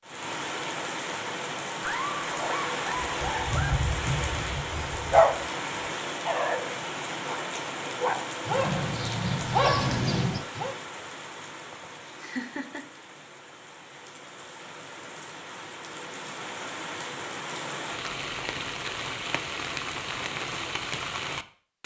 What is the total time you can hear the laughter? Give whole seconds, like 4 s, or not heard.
3 s.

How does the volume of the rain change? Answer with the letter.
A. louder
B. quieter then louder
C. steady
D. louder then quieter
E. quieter
B.